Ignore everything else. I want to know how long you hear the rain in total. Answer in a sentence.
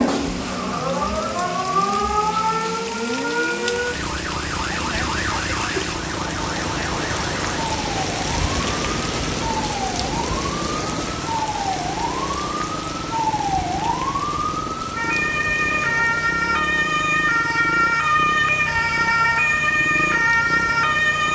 You can hear the rain for 21 seconds altogether.